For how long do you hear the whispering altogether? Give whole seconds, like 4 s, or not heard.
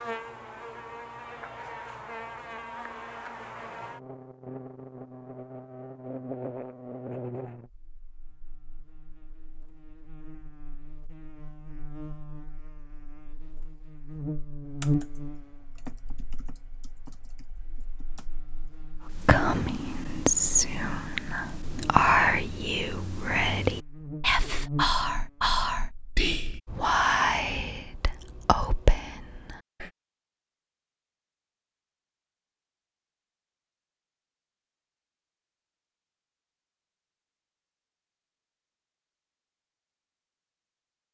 11 s.